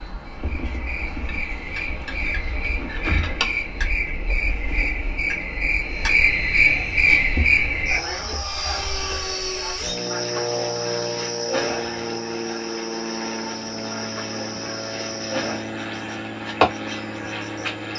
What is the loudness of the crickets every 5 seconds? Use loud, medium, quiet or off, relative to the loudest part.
medium, loud, medium, medium.